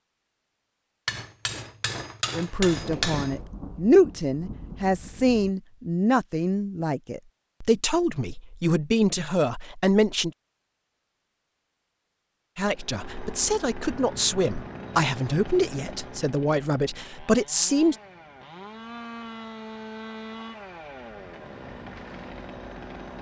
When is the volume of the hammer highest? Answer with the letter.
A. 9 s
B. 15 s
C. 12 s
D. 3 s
D.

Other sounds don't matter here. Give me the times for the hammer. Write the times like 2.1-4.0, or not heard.
1.1-3.4.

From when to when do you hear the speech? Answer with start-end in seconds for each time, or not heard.
2.4-10.3, 12.6-17.9.